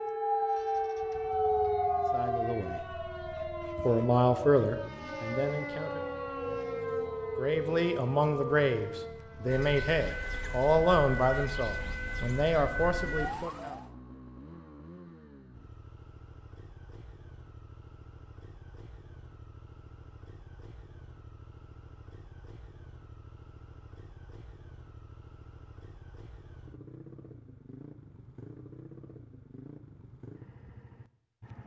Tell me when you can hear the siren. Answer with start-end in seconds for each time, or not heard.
0.0-13.8.